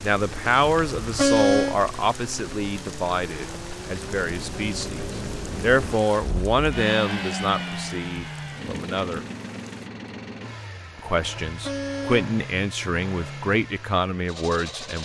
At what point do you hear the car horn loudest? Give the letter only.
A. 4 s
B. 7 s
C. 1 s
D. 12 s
C.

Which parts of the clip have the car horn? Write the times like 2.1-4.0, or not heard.
0.6-1.8, 11.2-12.3.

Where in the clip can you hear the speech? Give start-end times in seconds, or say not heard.
0.0-9.2, 10.9-15.0.